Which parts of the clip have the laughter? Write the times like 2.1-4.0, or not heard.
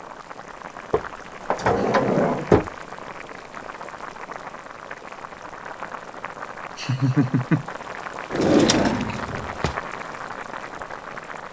1.8-2.2, 6.8-7.7.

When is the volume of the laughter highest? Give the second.
7 s.